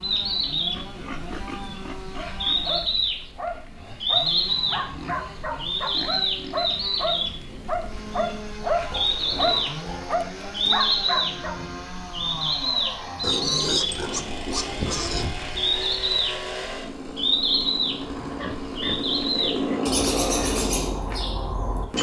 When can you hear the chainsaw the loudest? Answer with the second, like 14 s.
20 s.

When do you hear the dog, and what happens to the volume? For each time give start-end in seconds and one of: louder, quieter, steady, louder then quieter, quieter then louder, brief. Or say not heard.
2.1-11.6 louder.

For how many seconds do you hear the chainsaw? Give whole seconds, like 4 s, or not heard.
22 s.